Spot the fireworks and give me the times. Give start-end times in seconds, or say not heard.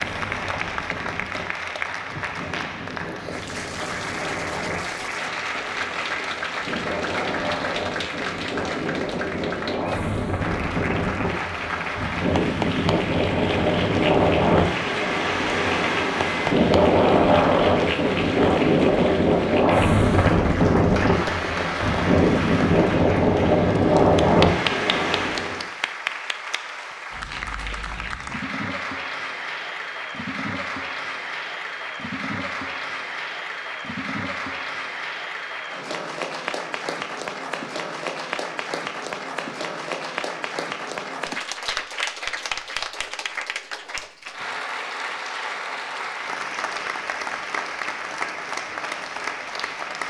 not heard.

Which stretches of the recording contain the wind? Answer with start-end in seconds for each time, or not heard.
0.0-25.6.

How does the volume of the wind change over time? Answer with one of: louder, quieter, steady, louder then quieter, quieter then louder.
louder.